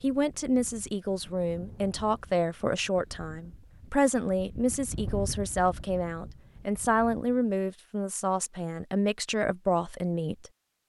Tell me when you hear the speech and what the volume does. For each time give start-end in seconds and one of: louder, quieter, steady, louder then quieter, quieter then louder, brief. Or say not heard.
0.0-10.5 steady.